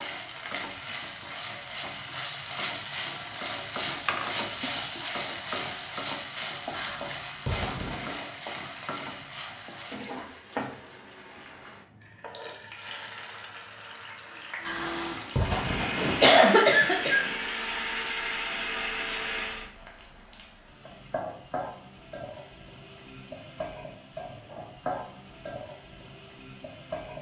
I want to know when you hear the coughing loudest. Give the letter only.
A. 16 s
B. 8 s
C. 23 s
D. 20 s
A.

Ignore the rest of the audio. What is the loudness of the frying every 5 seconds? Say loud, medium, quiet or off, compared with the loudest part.
loud, loud, medium, quiet, medium, medium.